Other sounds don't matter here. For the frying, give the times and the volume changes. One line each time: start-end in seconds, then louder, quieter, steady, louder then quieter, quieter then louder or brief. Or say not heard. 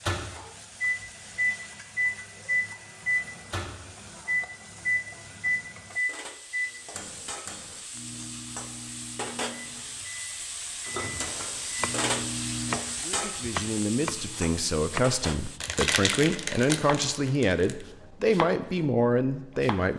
0.0-15.6 louder.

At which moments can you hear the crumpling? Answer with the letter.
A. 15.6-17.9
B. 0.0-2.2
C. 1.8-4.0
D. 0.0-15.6
A.